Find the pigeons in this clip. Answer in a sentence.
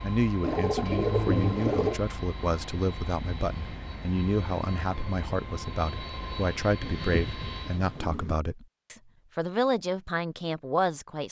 You can hear the pigeons from 0.4 to 2.0 s and from 6.8 to 8.4 s.